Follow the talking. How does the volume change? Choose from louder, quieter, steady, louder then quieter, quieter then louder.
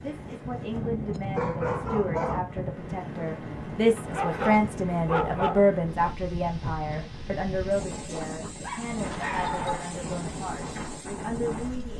louder then quieter.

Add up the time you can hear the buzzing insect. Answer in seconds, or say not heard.
not heard.